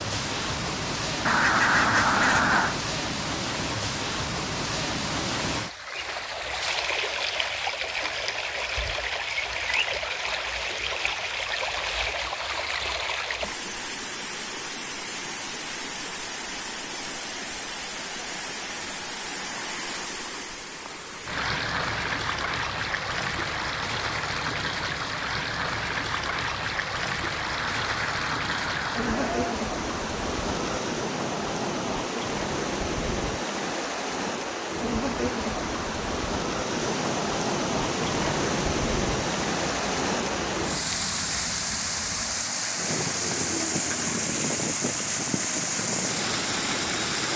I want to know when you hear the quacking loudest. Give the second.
2 s.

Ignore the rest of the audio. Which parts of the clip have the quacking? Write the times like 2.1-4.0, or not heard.
1.2-2.8, 27.5-29.6.